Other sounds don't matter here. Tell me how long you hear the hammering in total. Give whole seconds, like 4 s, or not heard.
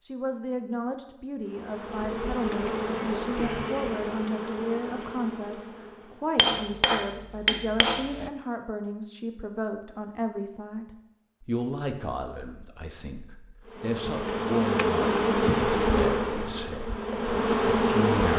2 s.